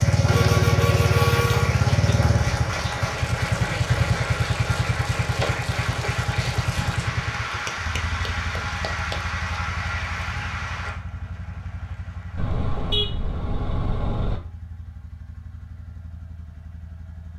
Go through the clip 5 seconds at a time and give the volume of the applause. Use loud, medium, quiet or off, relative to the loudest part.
loud, loud, medium, off.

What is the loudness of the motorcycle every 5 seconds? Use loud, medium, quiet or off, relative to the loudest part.
loud, medium, quiet, quiet.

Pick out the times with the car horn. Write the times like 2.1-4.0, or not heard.
0.2-1.8, 12.3-14.4.